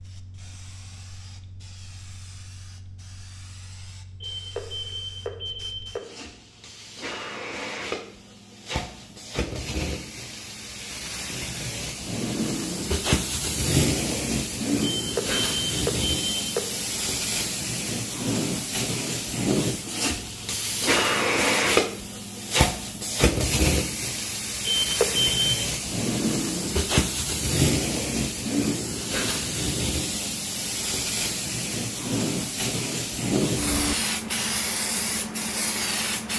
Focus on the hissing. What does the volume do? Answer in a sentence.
The loudness of the hissing goes up.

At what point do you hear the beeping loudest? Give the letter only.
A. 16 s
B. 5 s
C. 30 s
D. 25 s
D.